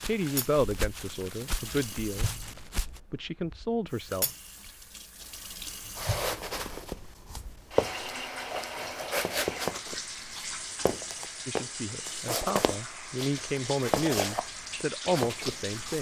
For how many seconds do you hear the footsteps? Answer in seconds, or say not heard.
13 s.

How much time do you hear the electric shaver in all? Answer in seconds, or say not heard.
not heard.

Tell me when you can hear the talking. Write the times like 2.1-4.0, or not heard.
0.0-2.5, 3.1-4.2, 11.4-15.9.